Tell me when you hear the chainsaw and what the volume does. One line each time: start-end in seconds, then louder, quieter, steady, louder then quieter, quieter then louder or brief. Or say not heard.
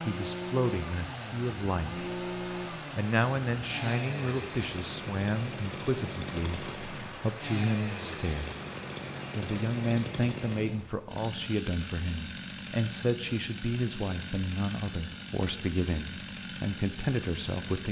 0.0-17.8 steady.